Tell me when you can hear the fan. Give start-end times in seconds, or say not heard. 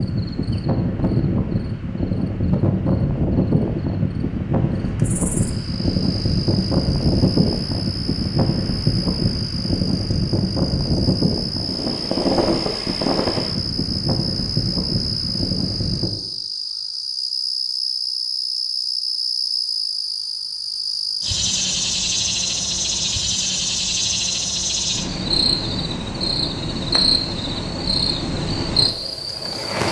0.0-16.1.